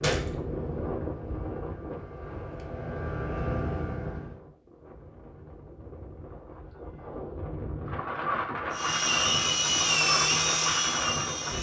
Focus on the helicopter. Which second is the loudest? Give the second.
10 s.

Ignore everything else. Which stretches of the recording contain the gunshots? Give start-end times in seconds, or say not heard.
0.0-0.4.